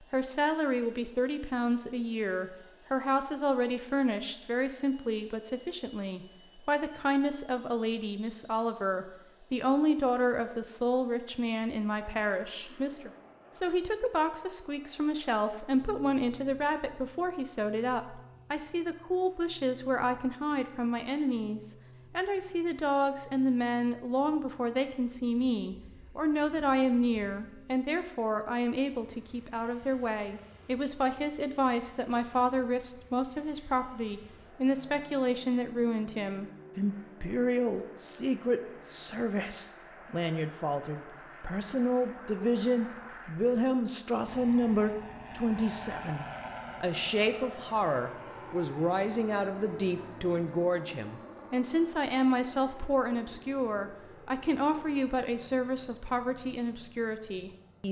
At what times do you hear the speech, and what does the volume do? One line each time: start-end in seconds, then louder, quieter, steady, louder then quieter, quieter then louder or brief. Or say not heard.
0.1-57.8 steady.